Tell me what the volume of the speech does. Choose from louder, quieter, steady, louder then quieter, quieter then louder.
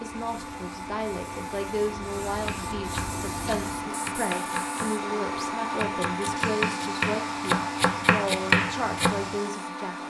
steady.